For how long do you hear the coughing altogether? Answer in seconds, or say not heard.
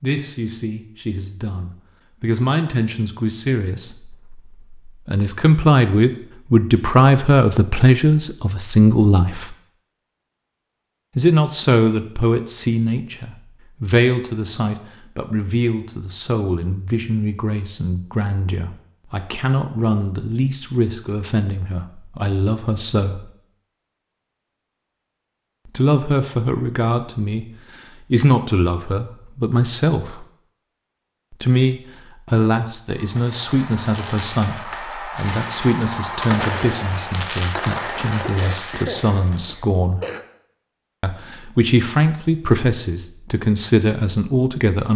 2 s.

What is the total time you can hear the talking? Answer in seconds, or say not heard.
39 s.